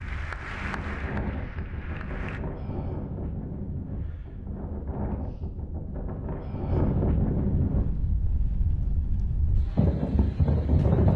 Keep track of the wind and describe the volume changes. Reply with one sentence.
The loudness of the wind goes up.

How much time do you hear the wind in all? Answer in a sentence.
The wind can be heard for 11 seconds in total.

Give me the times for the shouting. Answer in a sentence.
The shouting can't be heard in this clip.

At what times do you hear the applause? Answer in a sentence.
You can hear the applause from 0.0 to 2.4 s.